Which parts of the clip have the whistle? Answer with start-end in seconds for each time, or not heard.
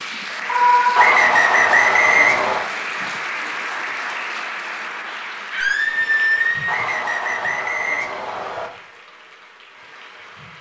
0.9-2.6, 6.7-8.7.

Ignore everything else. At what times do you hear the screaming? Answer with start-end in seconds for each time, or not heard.
0.5-1.1, 5.5-6.8.